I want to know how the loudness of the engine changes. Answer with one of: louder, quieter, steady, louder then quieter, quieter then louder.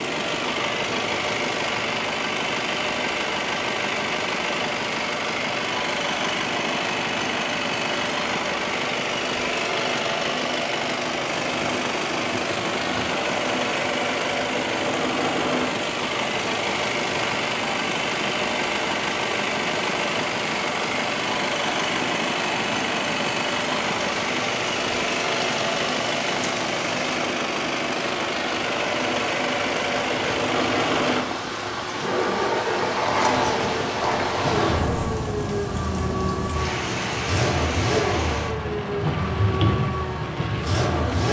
steady.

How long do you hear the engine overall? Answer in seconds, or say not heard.
41 s.